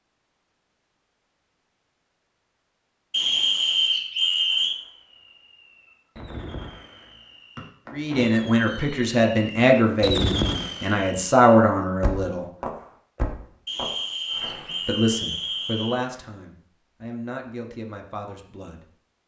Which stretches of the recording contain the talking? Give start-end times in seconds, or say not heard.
7.9-12.4, 14.8-18.9.